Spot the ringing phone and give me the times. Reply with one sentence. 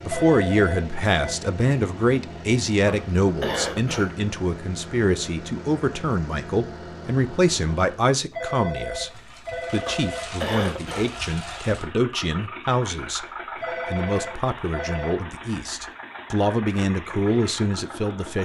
You can hear the ringing phone from 0.1 to 1.4 s, from 8.3 to 10.4 s and from 13.6 to 15.2 s.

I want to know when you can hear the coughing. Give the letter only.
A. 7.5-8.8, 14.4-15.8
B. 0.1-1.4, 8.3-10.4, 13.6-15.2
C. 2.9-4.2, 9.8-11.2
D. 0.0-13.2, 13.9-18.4
C.